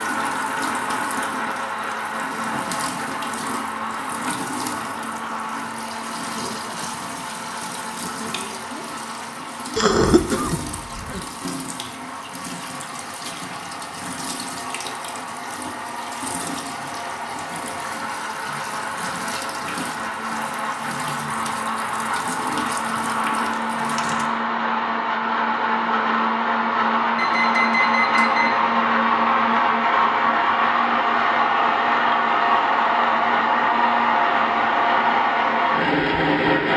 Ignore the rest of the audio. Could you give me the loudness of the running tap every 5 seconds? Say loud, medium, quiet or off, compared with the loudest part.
loud, loud, loud, loud, loud, off, off, off.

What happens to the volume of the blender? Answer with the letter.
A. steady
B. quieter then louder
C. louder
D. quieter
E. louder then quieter
B.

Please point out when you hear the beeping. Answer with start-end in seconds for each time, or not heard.
27.1-28.6.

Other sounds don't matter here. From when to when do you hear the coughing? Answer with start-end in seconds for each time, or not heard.
9.8-11.2.